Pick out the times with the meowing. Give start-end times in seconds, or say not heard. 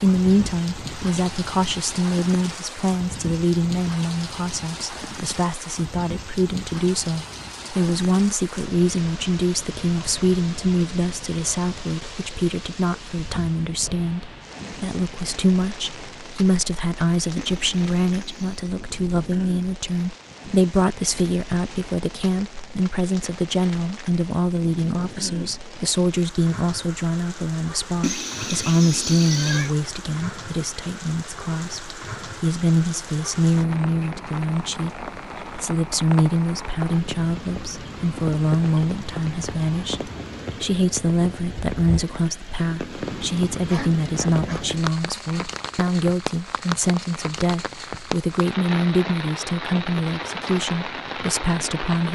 not heard.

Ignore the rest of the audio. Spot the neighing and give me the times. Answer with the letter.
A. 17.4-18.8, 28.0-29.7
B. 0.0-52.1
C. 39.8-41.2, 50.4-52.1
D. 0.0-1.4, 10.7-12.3
A.